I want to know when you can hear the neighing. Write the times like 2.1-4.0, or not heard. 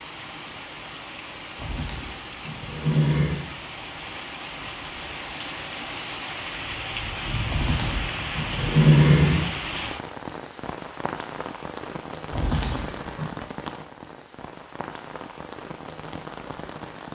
1.6-3.5, 7.5-9.4, 12.3-13.3.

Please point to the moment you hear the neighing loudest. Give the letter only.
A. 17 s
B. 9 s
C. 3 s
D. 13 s
B.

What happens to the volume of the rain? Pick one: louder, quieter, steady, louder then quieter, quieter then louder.
louder then quieter.